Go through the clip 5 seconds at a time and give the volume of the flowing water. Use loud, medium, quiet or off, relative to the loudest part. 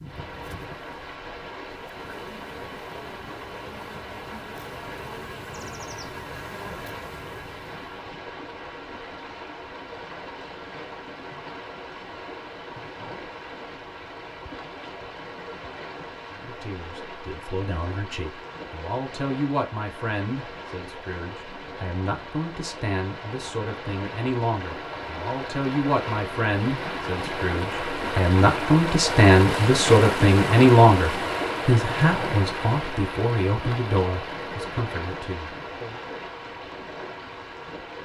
medium, medium, medium, medium, medium, loud, loud, medium.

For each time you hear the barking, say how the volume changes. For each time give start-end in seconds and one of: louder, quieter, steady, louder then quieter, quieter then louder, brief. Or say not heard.
not heard.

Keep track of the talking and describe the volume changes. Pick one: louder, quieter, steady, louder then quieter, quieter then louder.
louder then quieter.